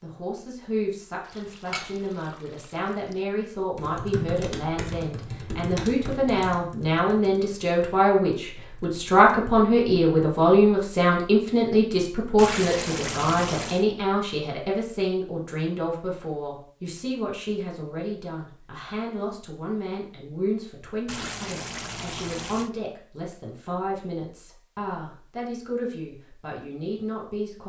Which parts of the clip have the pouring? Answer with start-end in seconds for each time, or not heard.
1.2-3.2, 12.3-13.8, 21.1-22.7.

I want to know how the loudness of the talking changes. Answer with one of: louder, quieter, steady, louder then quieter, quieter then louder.
louder then quieter.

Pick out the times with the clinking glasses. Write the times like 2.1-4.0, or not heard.
1.6-2.1.